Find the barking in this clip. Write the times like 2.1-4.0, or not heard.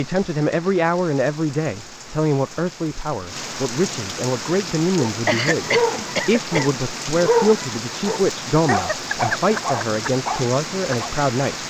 5.0-11.1.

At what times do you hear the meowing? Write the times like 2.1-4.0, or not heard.
not heard.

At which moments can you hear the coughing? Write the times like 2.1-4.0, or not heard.
5.2-6.8.